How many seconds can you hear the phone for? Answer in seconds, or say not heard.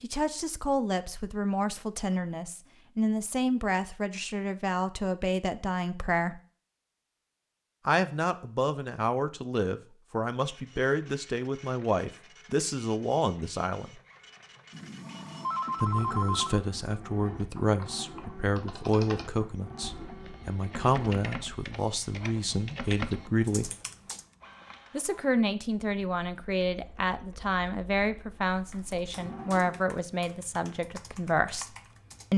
2 s.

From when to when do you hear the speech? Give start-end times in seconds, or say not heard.
0.0-6.4, 7.8-14.0, 15.8-23.7, 24.9-31.7.